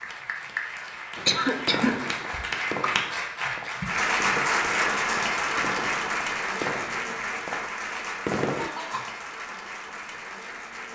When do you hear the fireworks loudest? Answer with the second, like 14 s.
8 s.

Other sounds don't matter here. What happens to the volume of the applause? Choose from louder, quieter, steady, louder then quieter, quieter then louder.
louder then quieter.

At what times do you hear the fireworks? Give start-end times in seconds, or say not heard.
1.1-8.7.